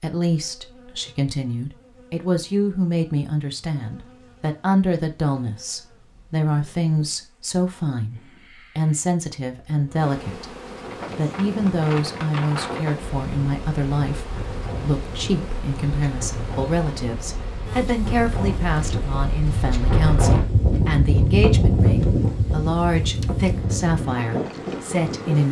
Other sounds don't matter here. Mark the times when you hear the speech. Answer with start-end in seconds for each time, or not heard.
0.0-10.6, 11.2-25.4.